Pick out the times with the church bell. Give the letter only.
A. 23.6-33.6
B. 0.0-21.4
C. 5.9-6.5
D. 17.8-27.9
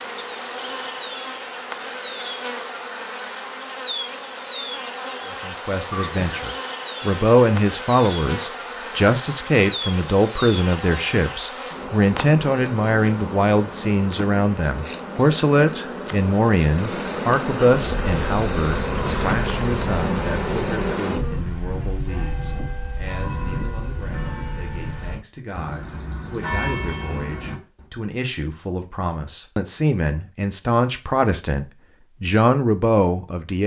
D.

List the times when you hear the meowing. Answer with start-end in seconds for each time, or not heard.
5.9-6.5.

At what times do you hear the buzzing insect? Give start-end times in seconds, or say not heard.
0.0-21.4.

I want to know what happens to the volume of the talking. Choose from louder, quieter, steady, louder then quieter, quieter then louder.
quieter then louder.